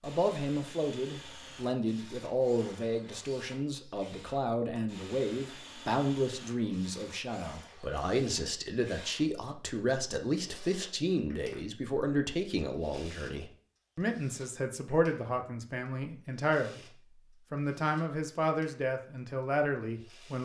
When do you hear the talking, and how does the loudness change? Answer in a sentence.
You can hear the talking from 0.0 to 16.9 s, at a steady volume; and briefly from 17.5 to 20.4 s.